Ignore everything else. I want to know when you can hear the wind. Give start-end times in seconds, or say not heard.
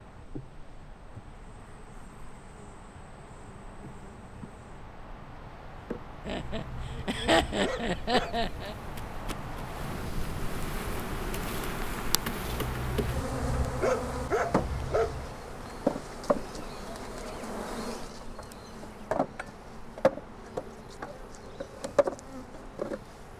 0.0-23.3.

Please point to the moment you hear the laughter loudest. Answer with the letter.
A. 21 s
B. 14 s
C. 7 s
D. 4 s
C.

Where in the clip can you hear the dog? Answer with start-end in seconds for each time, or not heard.
6.3-8.5, 12.4-15.3.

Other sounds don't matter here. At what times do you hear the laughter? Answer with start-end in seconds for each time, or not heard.
6.2-8.8.